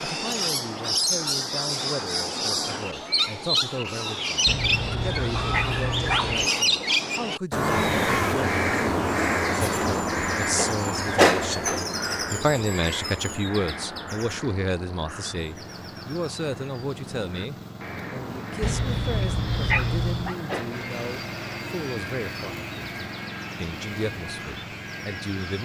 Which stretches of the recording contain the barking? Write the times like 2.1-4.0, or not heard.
4.5-6.5, 18.6-20.4.